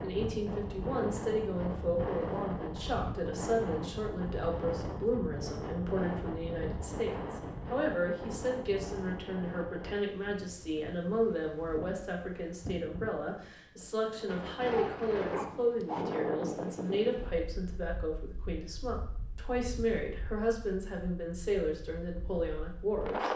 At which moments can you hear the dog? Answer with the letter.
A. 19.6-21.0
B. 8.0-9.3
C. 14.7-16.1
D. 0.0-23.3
C.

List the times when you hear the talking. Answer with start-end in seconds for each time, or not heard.
0.0-23.3.